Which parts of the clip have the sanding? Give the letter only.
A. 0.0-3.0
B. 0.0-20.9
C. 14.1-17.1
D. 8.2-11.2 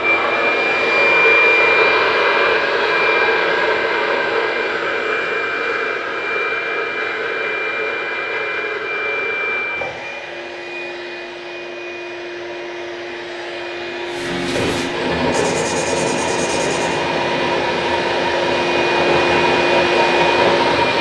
C.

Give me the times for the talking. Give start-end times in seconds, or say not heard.
not heard.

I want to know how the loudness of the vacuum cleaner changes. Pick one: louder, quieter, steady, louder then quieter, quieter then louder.
quieter then louder.